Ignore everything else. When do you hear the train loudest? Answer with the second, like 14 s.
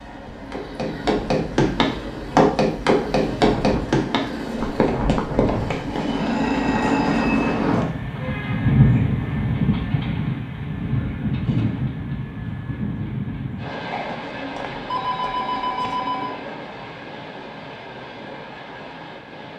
9 s.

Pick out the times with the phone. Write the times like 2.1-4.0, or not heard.
6.1-7.5, 13.9-16.3.